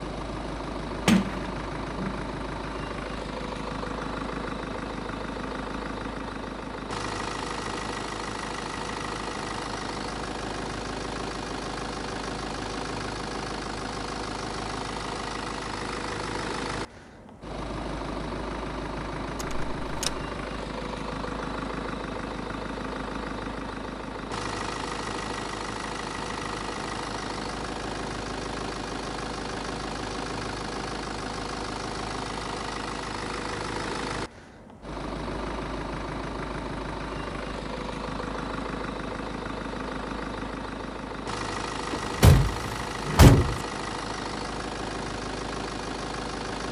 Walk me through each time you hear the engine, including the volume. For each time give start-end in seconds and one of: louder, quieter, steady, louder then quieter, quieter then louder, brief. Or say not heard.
0.0-46.6 steady.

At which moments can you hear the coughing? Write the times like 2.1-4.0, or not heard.
not heard.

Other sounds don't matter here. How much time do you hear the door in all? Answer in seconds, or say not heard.
4 s.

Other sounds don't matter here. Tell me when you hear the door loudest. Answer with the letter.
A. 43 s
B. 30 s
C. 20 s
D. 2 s
A.